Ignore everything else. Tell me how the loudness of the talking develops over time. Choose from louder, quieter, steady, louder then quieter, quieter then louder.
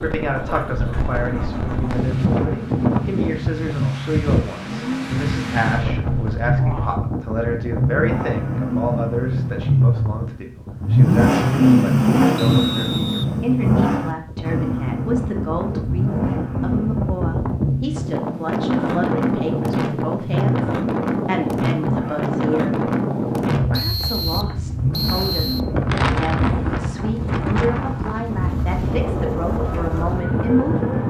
steady.